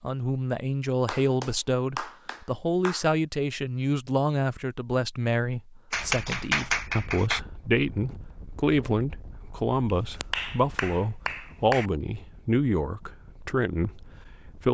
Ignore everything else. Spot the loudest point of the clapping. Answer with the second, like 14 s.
7 s.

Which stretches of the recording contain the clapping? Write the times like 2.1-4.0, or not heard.
1.1-3.0, 5.9-7.4, 9.8-11.9.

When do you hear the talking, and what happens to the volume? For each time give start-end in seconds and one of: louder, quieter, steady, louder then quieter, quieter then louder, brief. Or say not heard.
0.0-14.7 steady.